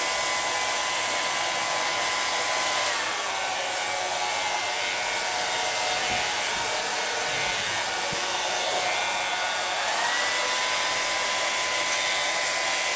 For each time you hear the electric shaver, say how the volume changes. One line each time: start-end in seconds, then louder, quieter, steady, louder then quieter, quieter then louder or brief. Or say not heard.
0.0-12.9 steady.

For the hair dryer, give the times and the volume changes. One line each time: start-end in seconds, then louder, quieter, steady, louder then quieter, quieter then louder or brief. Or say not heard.
0.0-12.9 steady.